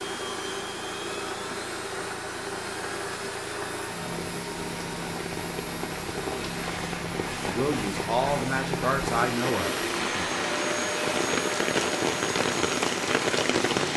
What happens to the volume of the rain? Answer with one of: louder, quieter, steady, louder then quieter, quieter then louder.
louder.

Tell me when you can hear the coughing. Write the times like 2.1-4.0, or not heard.
not heard.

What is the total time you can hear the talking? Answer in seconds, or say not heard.
3 s.